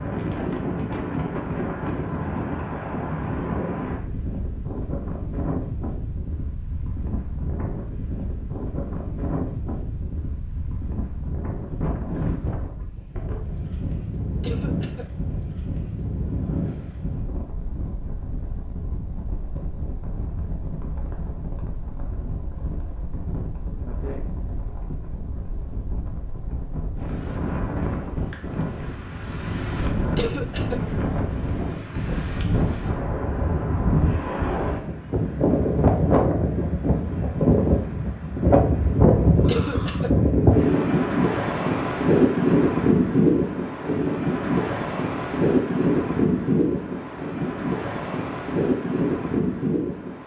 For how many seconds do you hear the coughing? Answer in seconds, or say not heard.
2 s.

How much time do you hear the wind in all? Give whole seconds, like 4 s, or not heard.
50 s.